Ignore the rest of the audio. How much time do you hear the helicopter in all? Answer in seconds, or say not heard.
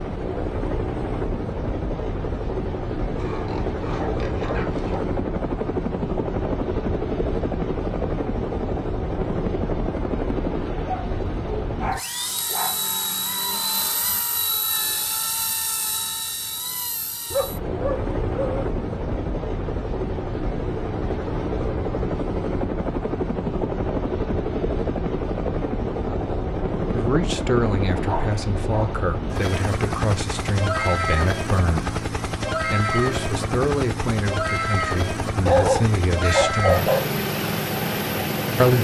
39 s.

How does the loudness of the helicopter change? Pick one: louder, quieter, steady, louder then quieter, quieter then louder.
steady.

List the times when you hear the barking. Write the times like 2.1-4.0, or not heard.
3.1-5.0, 10.9-12.8, 17.3-18.6, 27.9-28.9, 35.5-37.0.